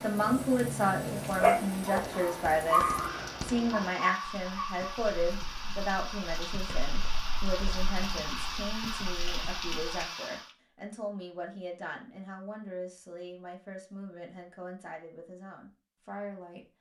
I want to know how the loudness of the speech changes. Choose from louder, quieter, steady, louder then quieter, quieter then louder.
quieter.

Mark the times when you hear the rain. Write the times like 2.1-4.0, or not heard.
0.0-10.6.